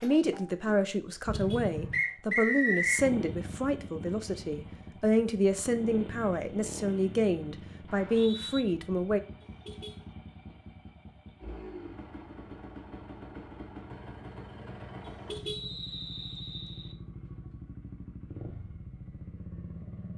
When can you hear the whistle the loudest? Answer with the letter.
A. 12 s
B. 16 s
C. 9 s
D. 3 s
D.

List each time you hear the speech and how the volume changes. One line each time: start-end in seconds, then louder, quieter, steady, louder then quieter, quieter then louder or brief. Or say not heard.
0.0-9.2 steady.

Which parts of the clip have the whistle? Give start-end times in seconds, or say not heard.
1.9-3.0, 7.8-8.7, 15.4-16.9.